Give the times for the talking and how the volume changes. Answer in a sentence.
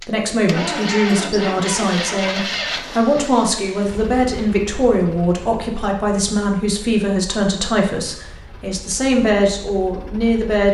You can hear the talking from 0.1 to 10.6 s, at a steady volume.